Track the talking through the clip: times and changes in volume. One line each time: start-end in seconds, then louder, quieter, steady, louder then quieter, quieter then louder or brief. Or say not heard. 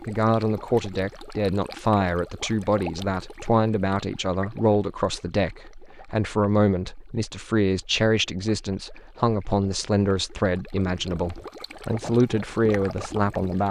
0.1-13.6 steady.